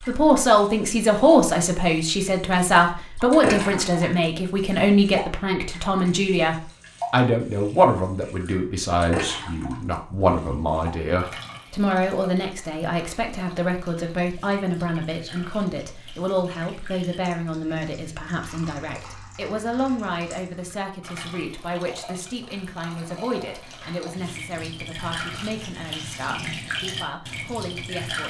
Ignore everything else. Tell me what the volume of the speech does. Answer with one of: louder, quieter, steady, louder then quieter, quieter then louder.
quieter.